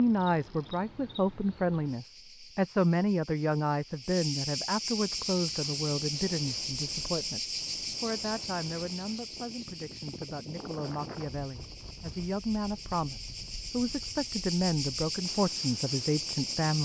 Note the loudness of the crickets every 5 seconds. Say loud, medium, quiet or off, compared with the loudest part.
medium, loud, medium, loud.